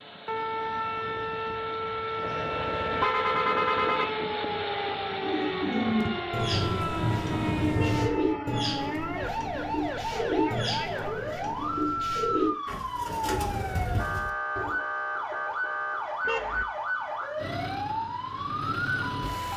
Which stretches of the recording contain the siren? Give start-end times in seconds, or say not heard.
0.1-19.5.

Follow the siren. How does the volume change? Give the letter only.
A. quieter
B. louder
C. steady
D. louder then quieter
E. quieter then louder
C.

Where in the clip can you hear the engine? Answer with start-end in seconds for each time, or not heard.
0.0-7.8, 17.4-19.5.